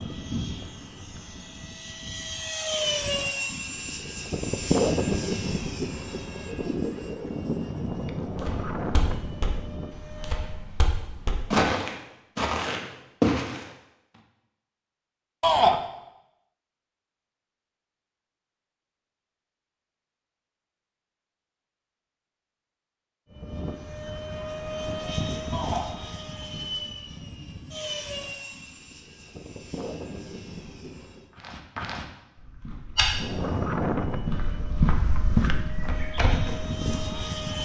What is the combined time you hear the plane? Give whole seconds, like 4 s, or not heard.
23 s.